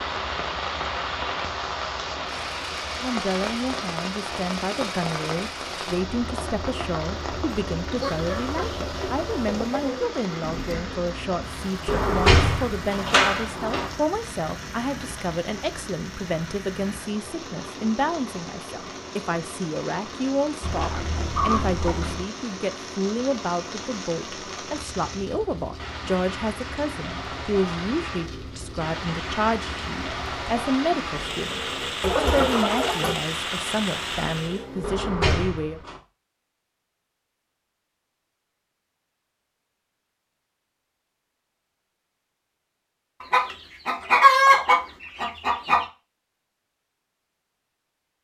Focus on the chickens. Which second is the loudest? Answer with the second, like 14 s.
44 s.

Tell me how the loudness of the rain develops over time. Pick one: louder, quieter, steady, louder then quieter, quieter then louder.
quieter then louder.